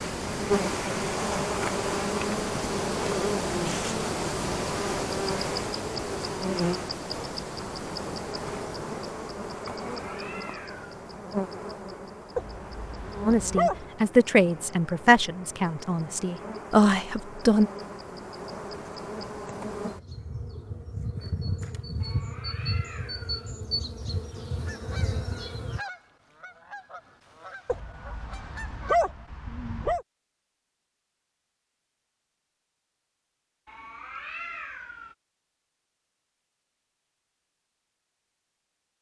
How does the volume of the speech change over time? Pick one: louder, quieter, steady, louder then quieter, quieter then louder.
quieter then louder.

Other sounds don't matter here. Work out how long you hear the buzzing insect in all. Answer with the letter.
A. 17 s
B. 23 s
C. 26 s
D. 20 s
C.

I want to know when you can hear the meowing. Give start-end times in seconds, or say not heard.
9.8-10.9, 22.0-23.5, 33.6-35.1.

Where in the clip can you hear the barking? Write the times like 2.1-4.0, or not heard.
12.3-13.9, 27.6-30.1.